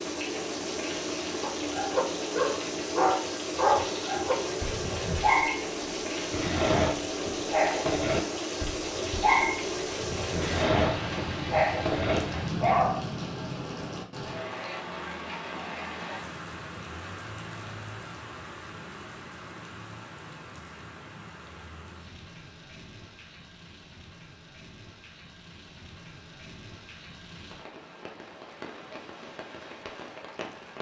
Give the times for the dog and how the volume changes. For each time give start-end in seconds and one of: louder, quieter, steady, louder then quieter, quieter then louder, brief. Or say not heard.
1.4-13.0 steady.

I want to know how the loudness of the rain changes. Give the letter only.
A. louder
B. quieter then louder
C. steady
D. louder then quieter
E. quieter
E.